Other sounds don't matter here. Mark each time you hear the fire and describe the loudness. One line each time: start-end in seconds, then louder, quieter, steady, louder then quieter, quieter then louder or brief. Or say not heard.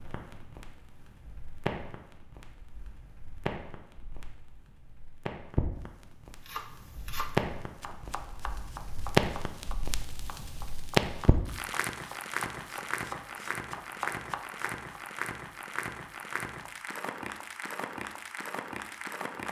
0.0-19.4 louder then quieter.